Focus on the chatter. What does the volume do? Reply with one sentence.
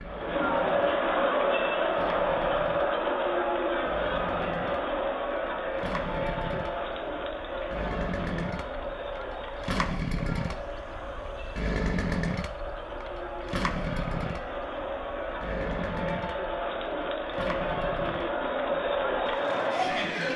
The volume of the chatter goes down, then up.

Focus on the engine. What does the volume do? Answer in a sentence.
The loudness of the engine goes up, then down.